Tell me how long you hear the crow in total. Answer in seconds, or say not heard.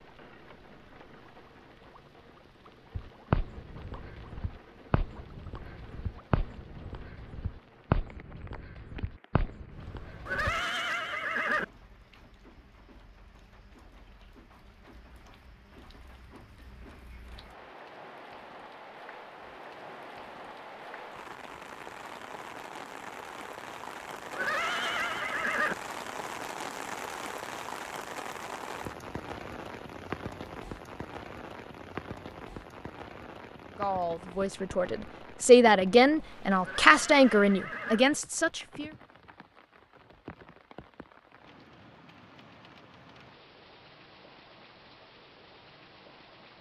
8 s.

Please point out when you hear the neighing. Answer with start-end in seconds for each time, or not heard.
10.2-11.7, 24.3-25.8, 36.6-38.0.